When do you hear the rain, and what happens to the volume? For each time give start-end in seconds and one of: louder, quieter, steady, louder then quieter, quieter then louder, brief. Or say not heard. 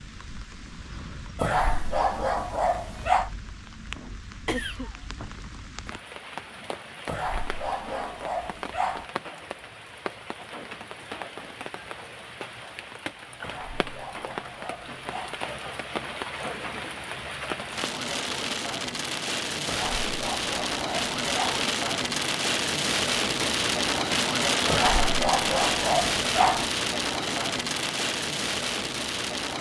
0.0-29.5 louder.